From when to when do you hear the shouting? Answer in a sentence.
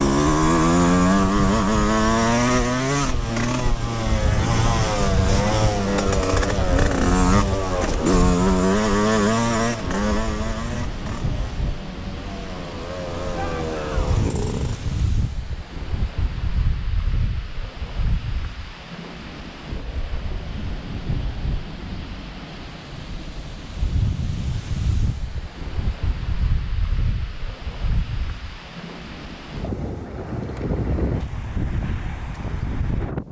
The shouting can be heard from 13.3 to 14.2 s.